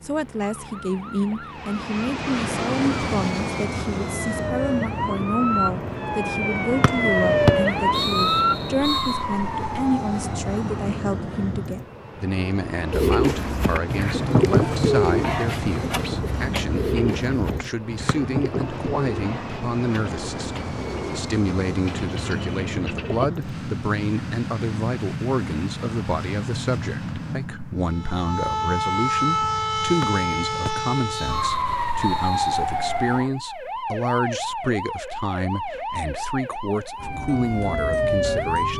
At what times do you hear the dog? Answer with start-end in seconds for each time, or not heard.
not heard.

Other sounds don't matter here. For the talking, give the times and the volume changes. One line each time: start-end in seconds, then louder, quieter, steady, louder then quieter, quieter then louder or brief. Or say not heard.
0.0-38.7 steady.